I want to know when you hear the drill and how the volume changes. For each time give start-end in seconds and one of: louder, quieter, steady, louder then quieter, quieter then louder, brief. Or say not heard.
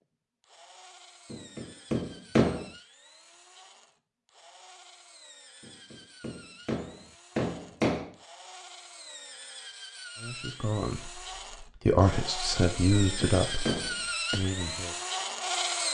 0.0-15.8 louder.